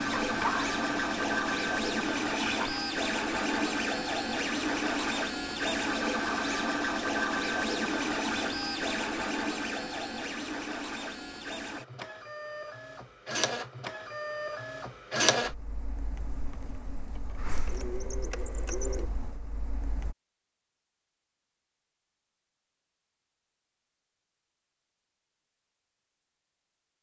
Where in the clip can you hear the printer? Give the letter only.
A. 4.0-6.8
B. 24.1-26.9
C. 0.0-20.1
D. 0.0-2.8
C.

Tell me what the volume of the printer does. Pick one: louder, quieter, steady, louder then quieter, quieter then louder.
quieter.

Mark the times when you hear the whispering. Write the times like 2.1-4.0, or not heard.
0.0-2.8.